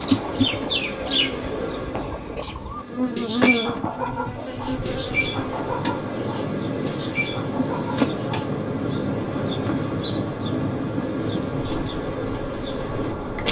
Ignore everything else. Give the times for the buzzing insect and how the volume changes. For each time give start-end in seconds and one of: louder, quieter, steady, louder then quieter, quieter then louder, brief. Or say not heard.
0.0-13.4 steady.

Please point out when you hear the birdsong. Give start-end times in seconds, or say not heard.
0.0-8.5.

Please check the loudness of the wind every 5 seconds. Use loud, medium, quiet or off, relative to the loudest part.
medium, loud, loud.